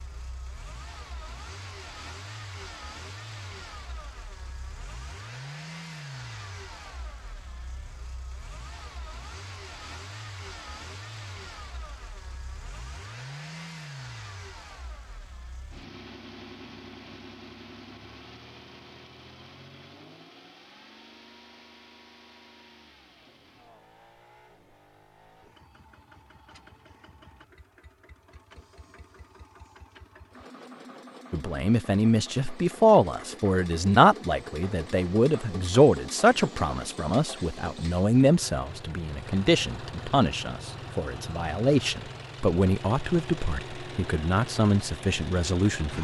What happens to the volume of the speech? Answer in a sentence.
The volume of the speech goes down.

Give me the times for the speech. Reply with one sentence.
The speech can be heard from 31.3 to 45.9 s.